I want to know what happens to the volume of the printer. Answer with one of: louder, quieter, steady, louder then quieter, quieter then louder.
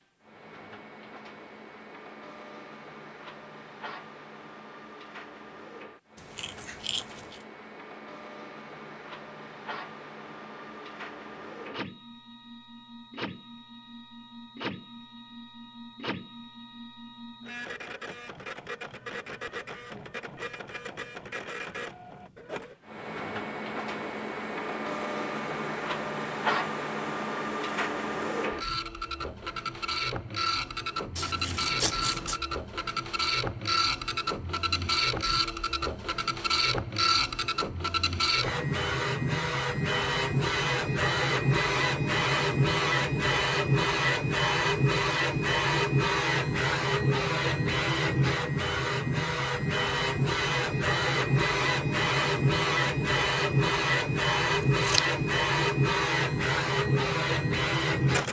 louder.